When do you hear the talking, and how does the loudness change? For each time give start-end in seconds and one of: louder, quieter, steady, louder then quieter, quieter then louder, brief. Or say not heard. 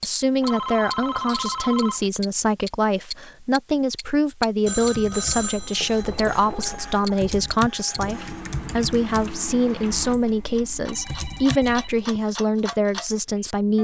0.0-13.8 steady.